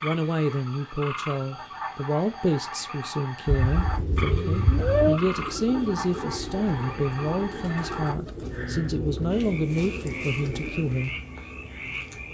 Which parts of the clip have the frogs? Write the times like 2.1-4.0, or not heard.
0.0-12.2.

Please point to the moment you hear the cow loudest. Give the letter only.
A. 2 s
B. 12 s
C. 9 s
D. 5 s
D.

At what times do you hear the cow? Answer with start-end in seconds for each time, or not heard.
3.6-5.2.